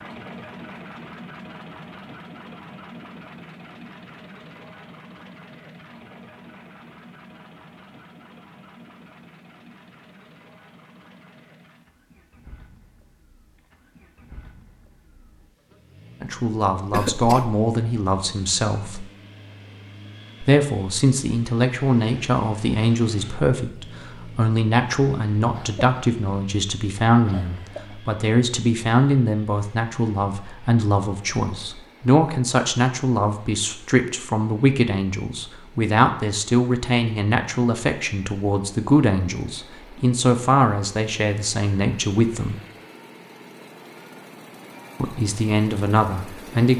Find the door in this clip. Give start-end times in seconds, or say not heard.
not heard.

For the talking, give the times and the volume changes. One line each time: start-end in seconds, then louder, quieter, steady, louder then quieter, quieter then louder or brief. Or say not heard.
16.2-19.1 brief
20.4-42.5 steady
45.0-46.7 brief.